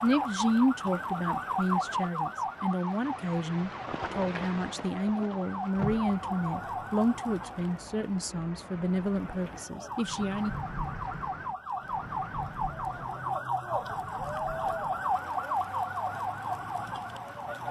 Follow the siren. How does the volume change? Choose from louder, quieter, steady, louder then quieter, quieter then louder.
quieter then louder.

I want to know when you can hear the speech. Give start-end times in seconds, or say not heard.
0.0-10.6.